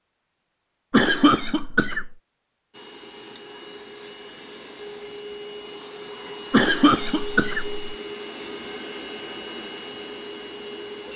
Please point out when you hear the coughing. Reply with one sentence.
You can hear the coughing from 0.9 to 2.1 s and from 6.5 to 8.0 s.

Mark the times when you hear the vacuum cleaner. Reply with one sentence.
The vacuum cleaner can be heard from 2.7 to 11.1 s.